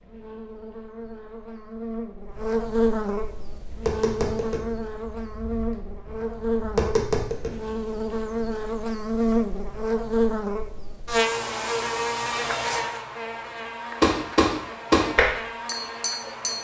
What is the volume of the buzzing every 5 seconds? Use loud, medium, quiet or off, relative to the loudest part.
loud, loud, loud, medium.